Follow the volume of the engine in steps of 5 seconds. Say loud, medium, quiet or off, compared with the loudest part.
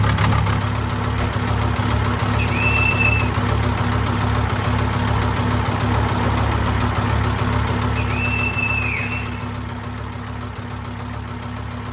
loud, loud, medium.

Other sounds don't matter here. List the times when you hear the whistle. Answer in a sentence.
You can hear the whistle from 2.4 to 3.3 s and from 8.0 to 9.4 s.